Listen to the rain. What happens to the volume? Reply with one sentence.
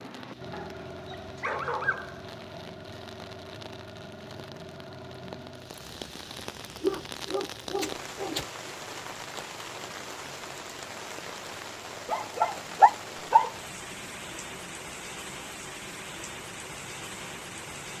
The loudness of the rain goes up.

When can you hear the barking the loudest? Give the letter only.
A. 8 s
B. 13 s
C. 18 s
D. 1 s
B.